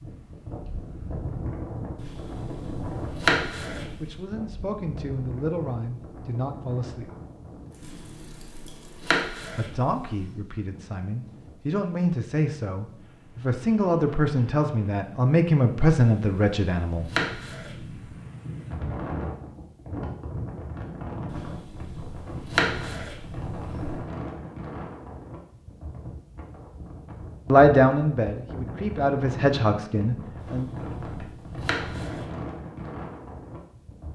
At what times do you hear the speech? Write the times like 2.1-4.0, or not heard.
4.0-7.1, 9.6-17.1, 27.5-30.6.